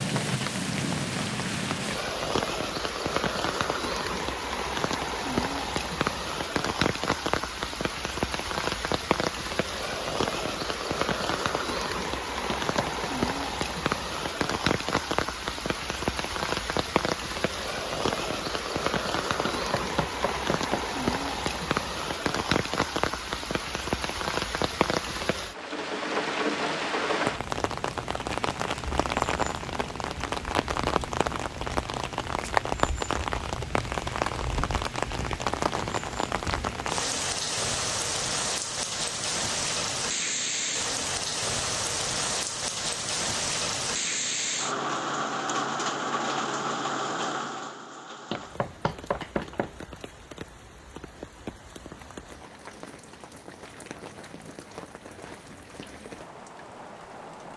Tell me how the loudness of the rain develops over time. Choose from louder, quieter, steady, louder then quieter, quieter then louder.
quieter.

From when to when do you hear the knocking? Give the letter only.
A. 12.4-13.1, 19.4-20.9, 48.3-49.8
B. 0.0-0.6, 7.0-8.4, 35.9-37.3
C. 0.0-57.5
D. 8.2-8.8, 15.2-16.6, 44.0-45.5
A.